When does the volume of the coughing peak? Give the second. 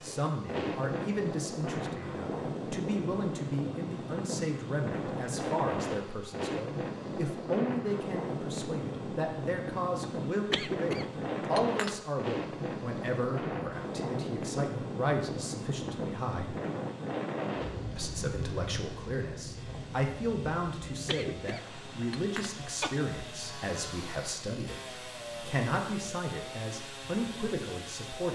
11 s.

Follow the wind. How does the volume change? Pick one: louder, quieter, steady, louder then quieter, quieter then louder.
quieter.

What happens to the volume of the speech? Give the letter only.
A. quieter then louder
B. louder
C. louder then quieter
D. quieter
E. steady
E.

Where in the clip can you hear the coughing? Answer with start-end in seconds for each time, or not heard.
10.5-11.9, 21.1-22.9.